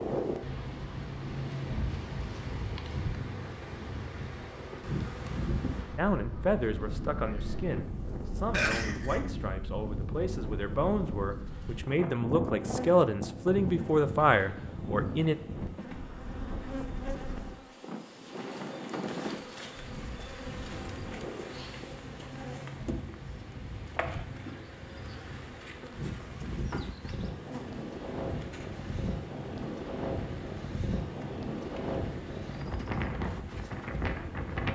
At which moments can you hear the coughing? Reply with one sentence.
The coughing can be heard from 8.5 to 9.2 s.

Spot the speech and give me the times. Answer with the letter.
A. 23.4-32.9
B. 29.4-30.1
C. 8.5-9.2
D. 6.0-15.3
D.